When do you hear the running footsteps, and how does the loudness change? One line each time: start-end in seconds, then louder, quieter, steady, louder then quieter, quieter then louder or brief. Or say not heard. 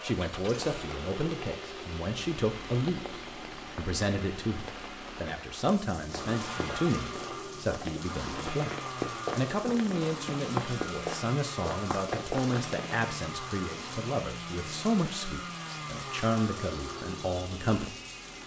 6.1-13.0 louder.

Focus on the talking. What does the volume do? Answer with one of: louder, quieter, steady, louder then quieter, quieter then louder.
steady.